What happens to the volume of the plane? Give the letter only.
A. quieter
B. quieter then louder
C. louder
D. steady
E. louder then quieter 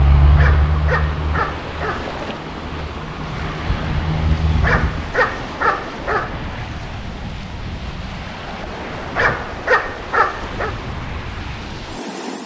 B.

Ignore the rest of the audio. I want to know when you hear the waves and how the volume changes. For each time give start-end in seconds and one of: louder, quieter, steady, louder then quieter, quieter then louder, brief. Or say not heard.
0.0-12.4 steady.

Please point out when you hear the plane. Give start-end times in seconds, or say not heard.
0.0-5.2.